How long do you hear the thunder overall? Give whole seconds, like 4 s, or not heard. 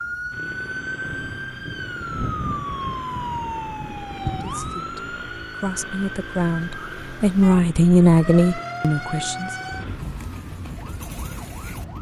4 s.